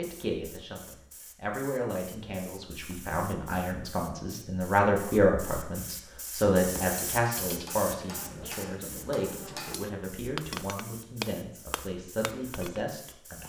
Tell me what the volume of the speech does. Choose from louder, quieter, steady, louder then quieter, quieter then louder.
louder then quieter.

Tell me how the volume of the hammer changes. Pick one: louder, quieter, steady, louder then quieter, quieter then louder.
louder then quieter.